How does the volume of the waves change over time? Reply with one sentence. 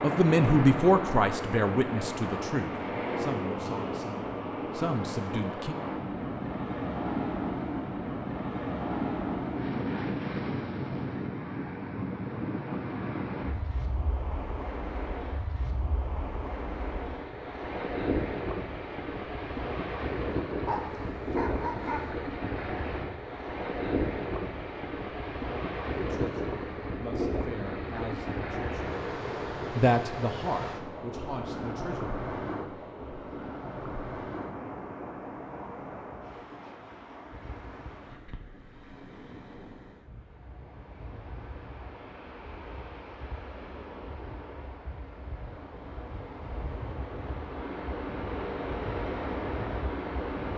The loudness of the waves goes down.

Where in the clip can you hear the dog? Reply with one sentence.
You can hear the dog from 20.6 to 22.1 s.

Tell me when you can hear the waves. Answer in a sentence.
The waves can be heard from 0.0 to 50.5 s.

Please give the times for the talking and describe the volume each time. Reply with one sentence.
You can hear the talking from 0.0 to 5.8 s, getting quieter then louder; briefly from 25.9 to 28.9 s; and briefly from 29.8 to 32.1 s.